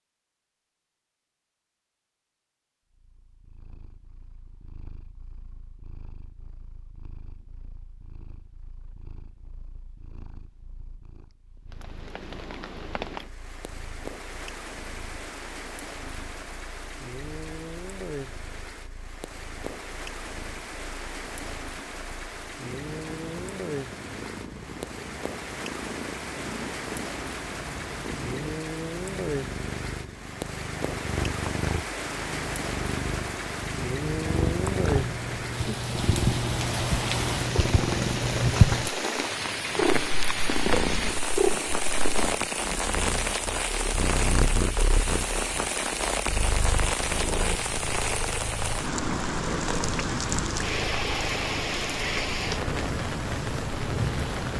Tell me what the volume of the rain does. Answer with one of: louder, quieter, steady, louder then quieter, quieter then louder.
louder.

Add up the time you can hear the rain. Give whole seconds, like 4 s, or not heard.
43 s.